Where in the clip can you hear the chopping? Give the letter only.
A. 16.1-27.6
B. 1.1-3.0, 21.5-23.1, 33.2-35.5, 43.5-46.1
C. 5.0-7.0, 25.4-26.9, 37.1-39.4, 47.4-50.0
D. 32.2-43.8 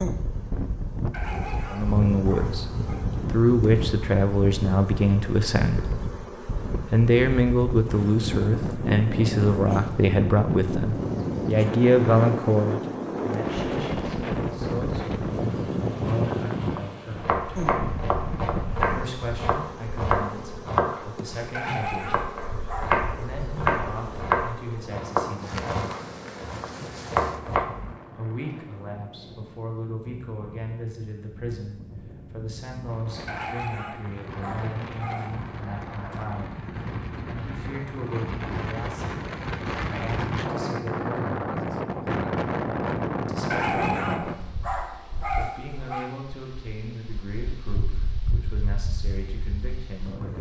A.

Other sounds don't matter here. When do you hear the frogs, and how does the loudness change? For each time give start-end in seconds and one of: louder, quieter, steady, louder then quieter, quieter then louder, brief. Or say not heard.
not heard.